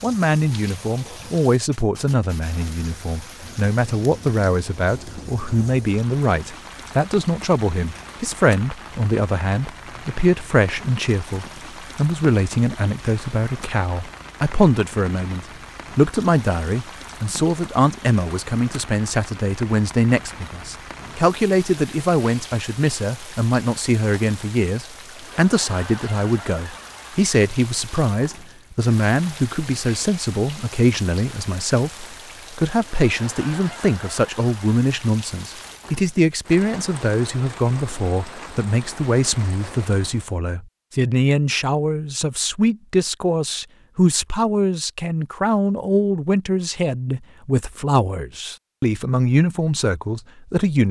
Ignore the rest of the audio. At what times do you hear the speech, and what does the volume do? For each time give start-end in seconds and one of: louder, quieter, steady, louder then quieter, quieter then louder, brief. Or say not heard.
0.0-50.8 steady.